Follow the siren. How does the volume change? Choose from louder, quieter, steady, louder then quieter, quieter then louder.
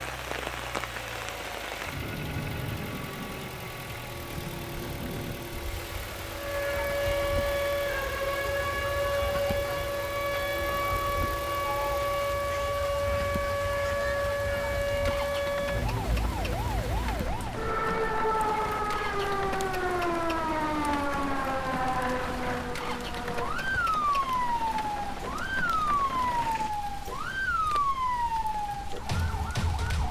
steady.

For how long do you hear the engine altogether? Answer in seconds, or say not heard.
27 s.